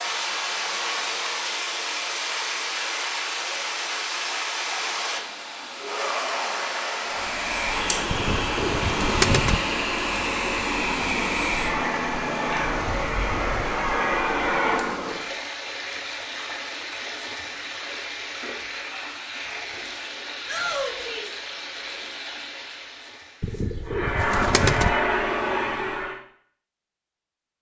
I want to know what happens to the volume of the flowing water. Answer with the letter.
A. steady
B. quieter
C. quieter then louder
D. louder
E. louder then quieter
B.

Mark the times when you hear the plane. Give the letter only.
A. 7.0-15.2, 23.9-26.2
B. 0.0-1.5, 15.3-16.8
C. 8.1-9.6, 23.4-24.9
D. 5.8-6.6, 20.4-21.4
A.